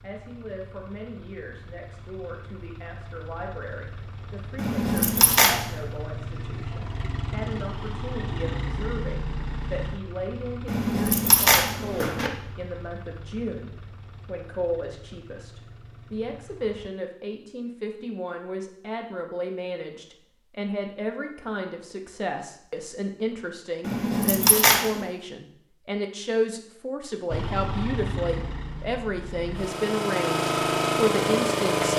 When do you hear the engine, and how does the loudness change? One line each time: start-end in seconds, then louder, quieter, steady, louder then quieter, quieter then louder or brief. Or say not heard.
0.0-16.9 louder then quieter
27.3-31.9 quieter then louder.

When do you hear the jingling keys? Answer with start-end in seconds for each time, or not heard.
4.5-5.6, 10.7-12.3, 23.8-25.1.